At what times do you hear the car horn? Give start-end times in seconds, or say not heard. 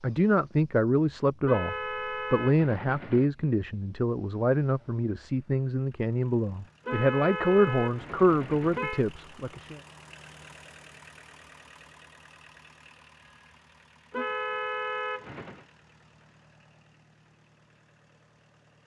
1.4-3.3, 6.8-9.1, 14.1-15.7.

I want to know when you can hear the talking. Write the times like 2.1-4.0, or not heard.
0.0-9.8.